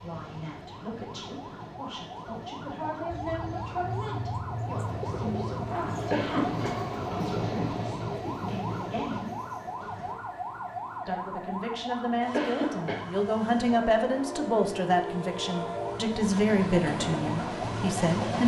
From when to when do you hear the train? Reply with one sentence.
The train can be heard from 0.0 to 10.2 s and from 12.2 to 18.4 s.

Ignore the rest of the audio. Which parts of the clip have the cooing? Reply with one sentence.
You can hear the cooing from 3.0 to 7.1 s.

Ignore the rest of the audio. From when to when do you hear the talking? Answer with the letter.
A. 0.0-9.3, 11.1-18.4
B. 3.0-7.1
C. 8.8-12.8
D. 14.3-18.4
A.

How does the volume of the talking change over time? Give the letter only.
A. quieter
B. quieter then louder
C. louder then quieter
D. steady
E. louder
E.